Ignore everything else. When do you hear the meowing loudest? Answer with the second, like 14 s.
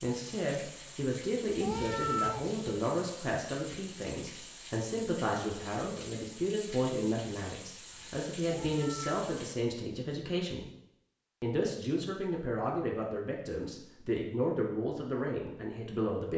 2 s.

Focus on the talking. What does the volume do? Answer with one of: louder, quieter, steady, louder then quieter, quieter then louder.
steady.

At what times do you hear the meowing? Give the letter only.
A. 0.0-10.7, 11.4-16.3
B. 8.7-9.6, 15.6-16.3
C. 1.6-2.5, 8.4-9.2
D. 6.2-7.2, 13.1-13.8
C.